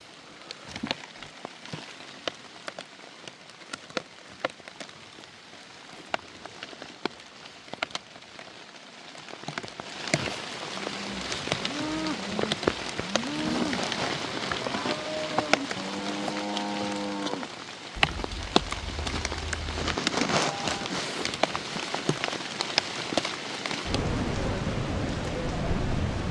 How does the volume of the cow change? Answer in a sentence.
The volume of the cow goes down.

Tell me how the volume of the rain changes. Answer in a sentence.
The volume of the rain goes up.